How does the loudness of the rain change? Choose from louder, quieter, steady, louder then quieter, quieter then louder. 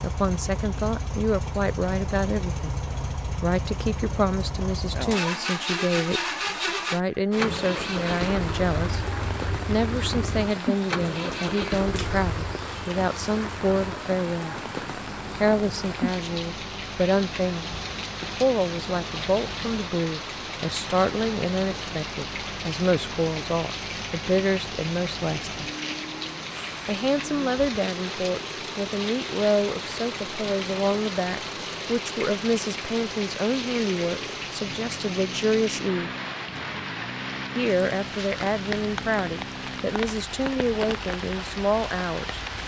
steady.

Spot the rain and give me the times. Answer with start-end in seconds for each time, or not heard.
7.3-42.6.